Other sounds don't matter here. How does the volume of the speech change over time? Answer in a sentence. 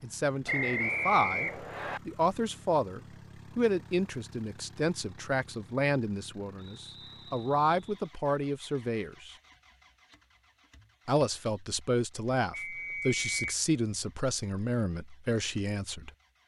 The loudness of the speech stays about the same.